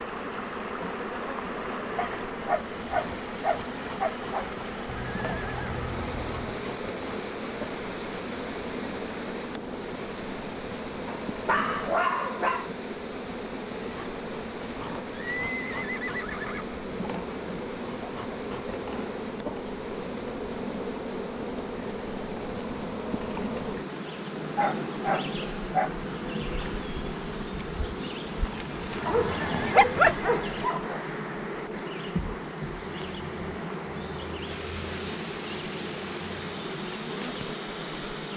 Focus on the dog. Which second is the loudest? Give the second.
30 s.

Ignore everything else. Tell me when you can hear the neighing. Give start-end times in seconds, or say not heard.
4.8-6.7, 15.1-16.6, 28.9-30.4.